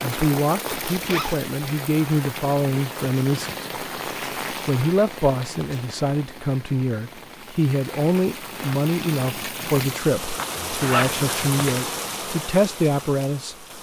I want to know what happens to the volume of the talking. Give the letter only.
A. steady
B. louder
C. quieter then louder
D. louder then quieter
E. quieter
A.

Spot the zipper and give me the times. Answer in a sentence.
The zipper can be heard from 0.7 to 1.4 s and from 10.3 to 11.9 s.